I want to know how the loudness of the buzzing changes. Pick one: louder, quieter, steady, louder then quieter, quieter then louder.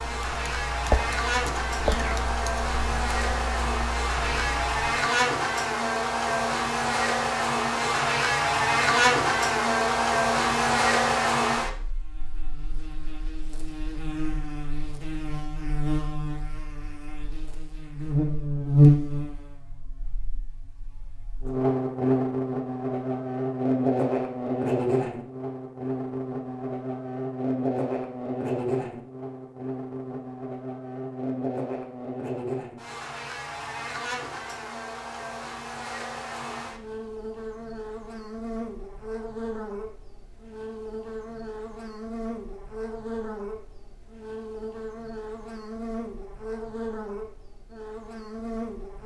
quieter.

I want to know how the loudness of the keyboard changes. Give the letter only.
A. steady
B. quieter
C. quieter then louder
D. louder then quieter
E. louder
B.